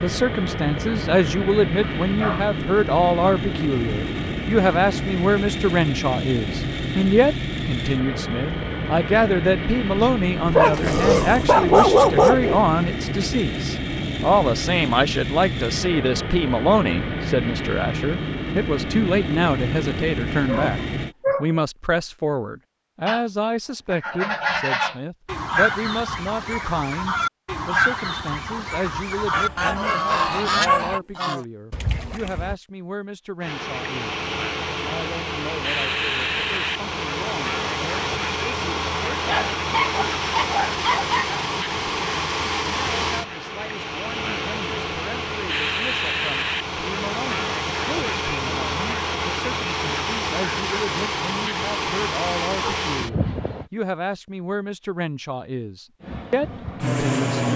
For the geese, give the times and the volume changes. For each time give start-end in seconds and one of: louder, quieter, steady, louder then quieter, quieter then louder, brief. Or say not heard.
23.1-32.5 steady.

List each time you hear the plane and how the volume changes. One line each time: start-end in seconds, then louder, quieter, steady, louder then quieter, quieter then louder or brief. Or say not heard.
0.0-21.1 steady
33.4-53.7 steady
56.0-57.5 brief.